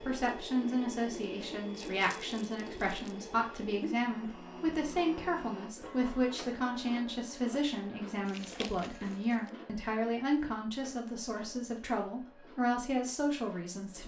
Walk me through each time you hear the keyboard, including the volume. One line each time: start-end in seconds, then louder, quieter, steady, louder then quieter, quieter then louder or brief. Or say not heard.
not heard.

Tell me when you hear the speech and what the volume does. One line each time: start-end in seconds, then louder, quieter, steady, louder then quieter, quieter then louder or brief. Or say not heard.
0.0-14.0 steady.